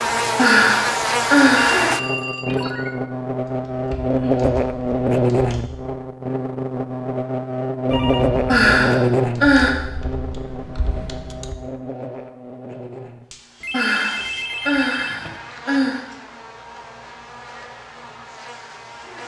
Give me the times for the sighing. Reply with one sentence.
You can hear the sighing from 0.3 to 1.9 s, from 8.4 to 9.7 s and from 13.7 to 16.0 s.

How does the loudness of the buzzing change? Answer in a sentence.
The loudness of the buzzing goes down.